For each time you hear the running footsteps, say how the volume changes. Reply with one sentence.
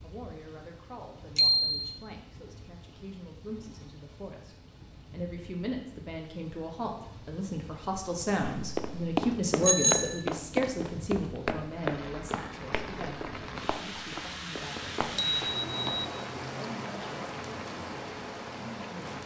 The running footsteps can be heard from 8.6 to 16.1 s, getting quieter.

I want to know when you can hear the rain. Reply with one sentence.
You can hear the rain from 0.0 to 19.2 s.